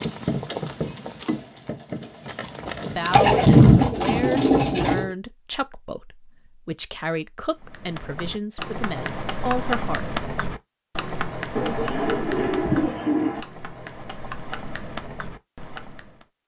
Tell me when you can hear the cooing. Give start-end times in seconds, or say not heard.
3.1-5.1, 11.6-13.4.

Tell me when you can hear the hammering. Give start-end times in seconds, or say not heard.
not heard.